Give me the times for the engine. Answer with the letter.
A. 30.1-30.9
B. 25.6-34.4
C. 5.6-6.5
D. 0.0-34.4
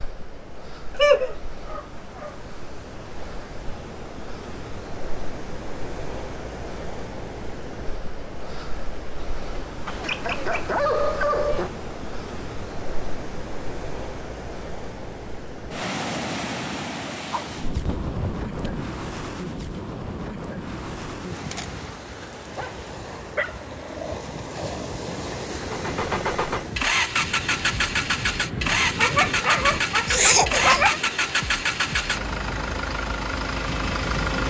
B.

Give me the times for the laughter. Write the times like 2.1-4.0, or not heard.
30.1-30.9.